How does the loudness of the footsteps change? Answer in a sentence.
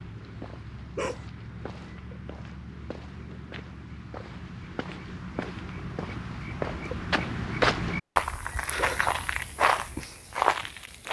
The loudness of the footsteps goes up.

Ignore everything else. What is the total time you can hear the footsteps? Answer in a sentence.
You can hear the footsteps for 11 seconds altogether.